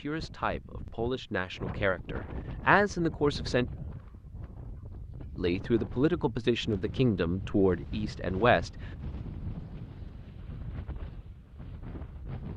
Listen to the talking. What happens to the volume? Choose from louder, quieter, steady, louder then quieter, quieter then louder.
louder.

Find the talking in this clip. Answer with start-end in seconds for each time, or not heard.
0.0-3.6, 5.3-8.7.